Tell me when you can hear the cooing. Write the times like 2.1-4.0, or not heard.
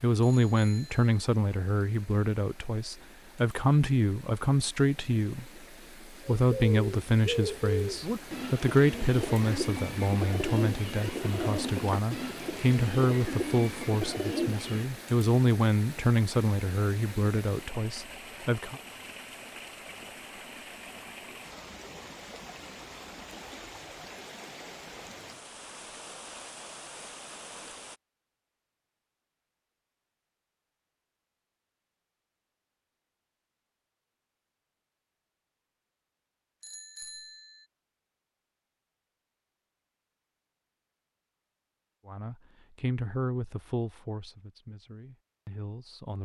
6.5-14.9.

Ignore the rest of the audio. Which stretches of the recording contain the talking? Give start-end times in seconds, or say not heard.
0.0-5.5, 6.2-18.8, 42.0-46.2.